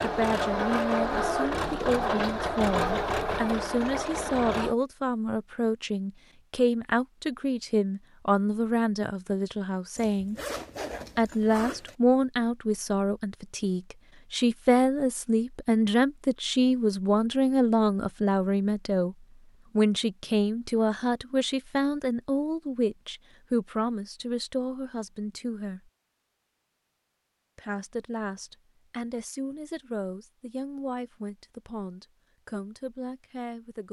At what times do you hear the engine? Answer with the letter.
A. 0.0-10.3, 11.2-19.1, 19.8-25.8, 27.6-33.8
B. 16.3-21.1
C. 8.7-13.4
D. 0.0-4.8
D.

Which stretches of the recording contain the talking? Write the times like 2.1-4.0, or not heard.
0.0-10.3, 11.2-19.1, 19.8-25.8, 27.6-33.8.